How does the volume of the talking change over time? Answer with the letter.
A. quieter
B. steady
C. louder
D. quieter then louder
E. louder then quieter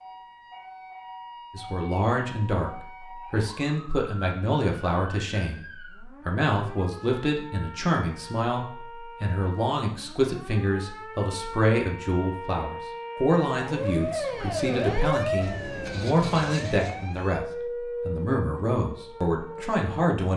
B.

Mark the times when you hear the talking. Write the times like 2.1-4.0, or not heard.
1.5-20.3.